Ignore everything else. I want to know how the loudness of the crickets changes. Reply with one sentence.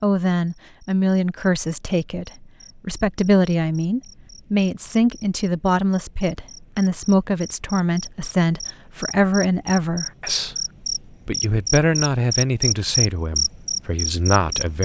The loudness of the crickets goes up.